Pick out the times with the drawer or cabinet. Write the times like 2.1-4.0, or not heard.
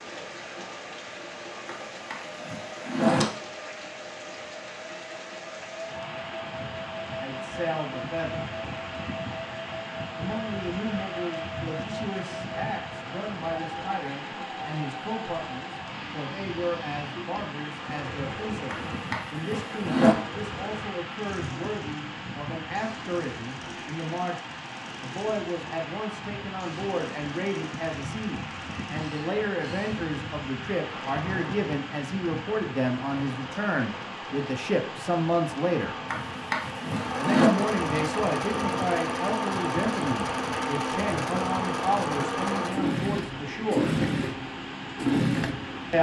1.6-3.2, 18.7-20.1, 36.1-37.5.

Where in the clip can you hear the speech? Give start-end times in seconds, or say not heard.
7.2-8.6, 10.2-24.4, 25.0-36.0, 37.1-43.9.